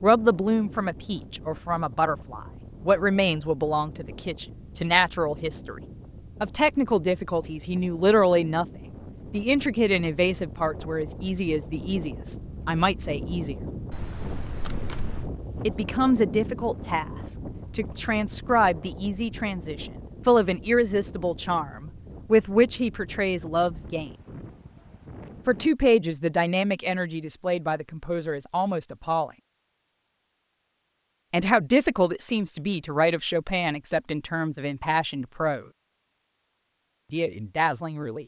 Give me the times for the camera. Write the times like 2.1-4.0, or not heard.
13.9-15.3.